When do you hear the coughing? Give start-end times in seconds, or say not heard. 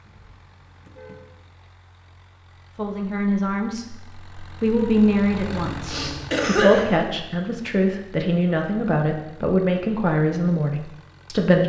5.7-6.8.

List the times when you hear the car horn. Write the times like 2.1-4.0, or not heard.
0.0-1.5.